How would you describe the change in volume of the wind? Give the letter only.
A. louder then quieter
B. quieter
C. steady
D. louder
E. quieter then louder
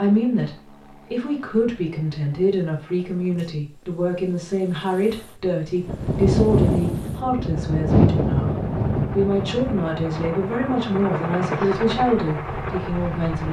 B.